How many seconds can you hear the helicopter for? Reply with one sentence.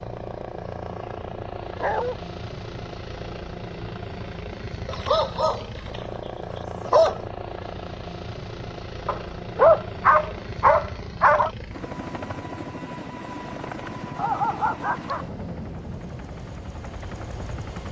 You can hear the helicopter for 18 seconds altogether.